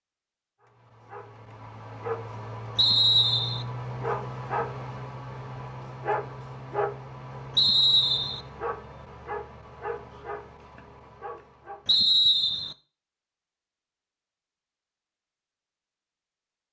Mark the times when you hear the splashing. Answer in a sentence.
You can't hear the splashing here.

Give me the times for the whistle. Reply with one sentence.
The whistle can be heard from 2.8 to 3.6 s, from 7.5 to 8.4 s and from 11.8 to 12.8 s.